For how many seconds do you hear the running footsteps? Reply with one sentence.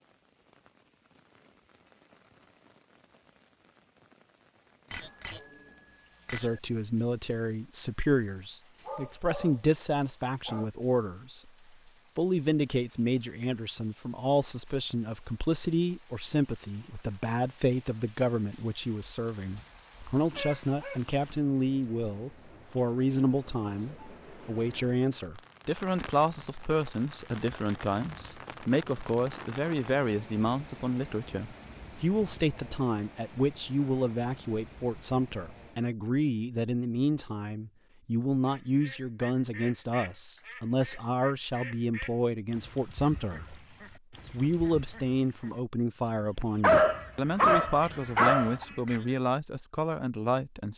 You can't hear the running footsteps here.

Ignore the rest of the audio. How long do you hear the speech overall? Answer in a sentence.
The speech can be heard for 43 seconds in total.